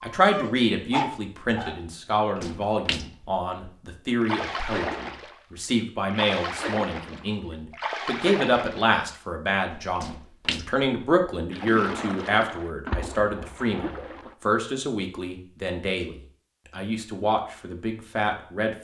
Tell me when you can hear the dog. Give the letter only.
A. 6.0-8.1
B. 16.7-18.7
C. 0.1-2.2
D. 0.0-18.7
C.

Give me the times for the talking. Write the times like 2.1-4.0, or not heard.
0.0-18.7.